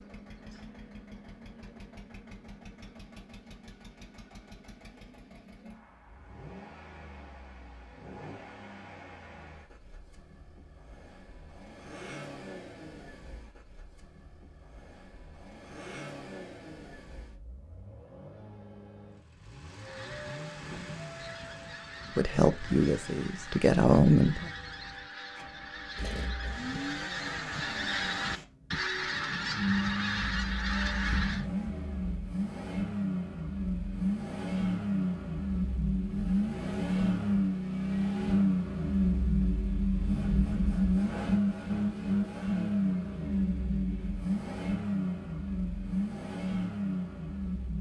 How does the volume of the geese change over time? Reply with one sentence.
The volume of the geese goes up.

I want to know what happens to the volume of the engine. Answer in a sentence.
The loudness of the engine goes up.